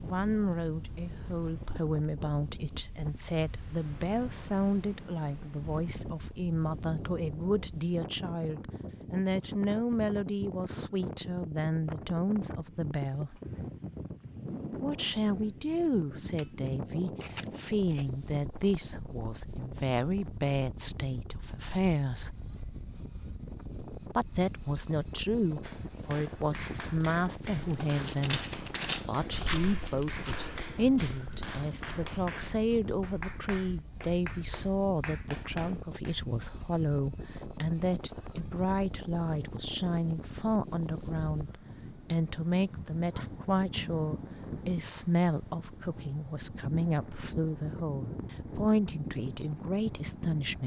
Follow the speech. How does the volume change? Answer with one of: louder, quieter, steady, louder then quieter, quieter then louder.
steady.